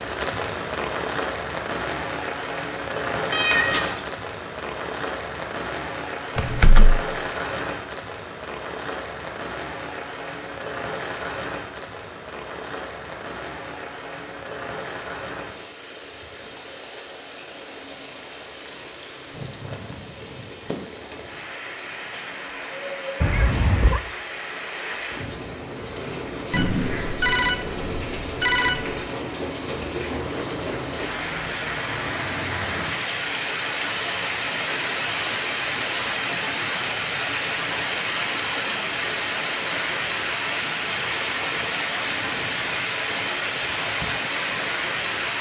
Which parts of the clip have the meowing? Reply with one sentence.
The meowing can be heard from 3.3 to 4.0 s and from 23.2 to 24.0 s.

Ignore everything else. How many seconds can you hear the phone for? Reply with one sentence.
The phone can be heard for 3 seconds in total.